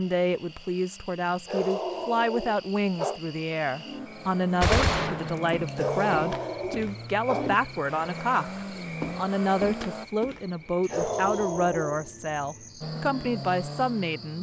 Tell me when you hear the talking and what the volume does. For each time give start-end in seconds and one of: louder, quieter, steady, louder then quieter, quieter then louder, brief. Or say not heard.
0.0-14.3 steady.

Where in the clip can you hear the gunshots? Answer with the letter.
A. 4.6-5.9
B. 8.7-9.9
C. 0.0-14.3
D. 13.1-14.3
A.